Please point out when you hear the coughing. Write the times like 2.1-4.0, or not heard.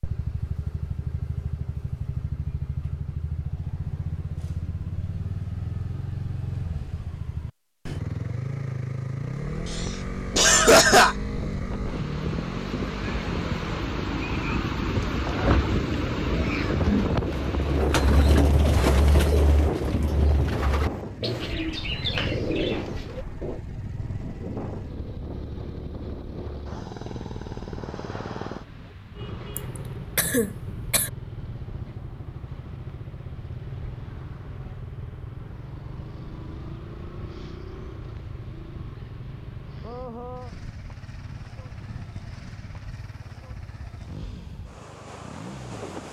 9.7-11.2, 29.6-31.1.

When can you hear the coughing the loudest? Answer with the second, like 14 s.
11 s.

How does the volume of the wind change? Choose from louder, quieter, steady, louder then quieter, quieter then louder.
quieter.